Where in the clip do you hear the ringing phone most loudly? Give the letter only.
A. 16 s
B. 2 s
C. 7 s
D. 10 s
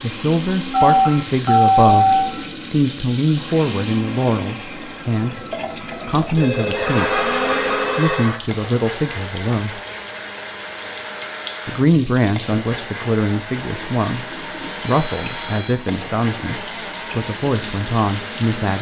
B.